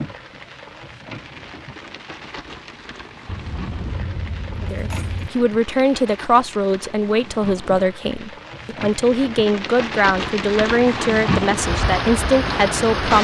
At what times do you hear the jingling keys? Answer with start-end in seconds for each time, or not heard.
3.2-5.3.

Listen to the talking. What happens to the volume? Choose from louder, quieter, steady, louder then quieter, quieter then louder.
steady.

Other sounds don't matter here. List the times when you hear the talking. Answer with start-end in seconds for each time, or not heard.
4.6-13.1.